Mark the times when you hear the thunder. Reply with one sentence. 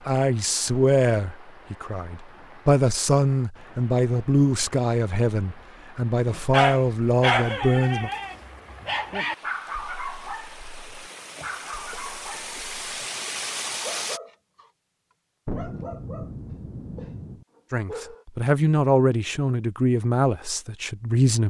You can hear the thunder from 15.4 to 17.4 s.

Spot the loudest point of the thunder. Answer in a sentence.
The volume of the thunder peaks at 16 seconds.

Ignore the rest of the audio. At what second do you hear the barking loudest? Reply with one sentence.
The volume of the barking peaks at 7 seconds.